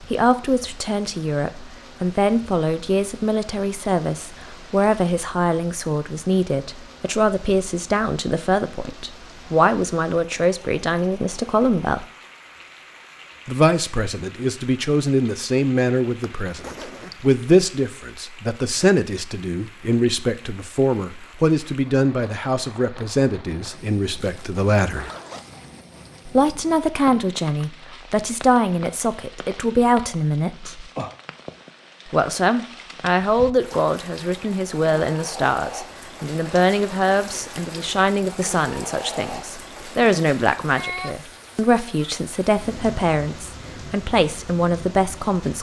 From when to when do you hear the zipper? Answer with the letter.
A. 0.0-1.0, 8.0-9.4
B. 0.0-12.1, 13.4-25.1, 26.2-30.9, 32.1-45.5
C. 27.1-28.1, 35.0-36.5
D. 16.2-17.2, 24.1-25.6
D.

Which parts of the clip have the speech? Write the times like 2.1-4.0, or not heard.
0.0-12.1, 13.4-25.1, 26.2-30.9, 32.1-45.5.